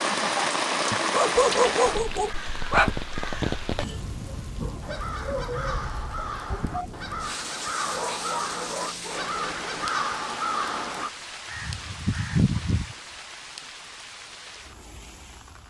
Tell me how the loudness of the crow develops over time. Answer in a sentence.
The loudness of the crow goes up.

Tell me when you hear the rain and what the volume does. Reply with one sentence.
You can hear the rain from 0.0 to 15.6 s, getting quieter.